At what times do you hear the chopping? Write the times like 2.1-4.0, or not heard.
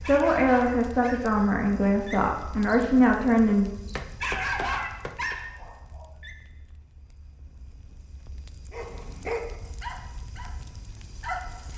3.9-5.3.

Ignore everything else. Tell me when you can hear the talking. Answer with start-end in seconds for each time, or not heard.
0.0-3.7.